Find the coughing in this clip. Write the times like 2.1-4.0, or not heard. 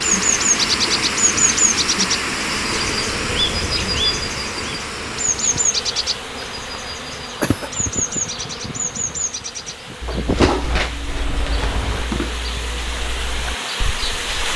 7.4-8.0.